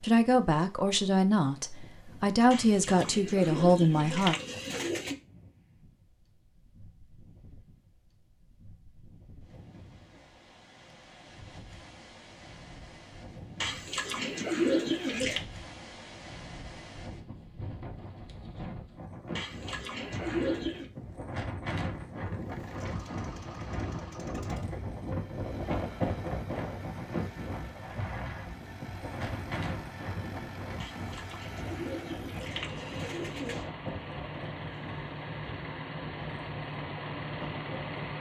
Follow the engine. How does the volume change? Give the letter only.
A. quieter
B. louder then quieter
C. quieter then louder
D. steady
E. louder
E.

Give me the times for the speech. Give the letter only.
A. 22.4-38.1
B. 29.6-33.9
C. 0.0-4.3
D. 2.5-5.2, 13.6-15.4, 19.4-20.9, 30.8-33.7
C.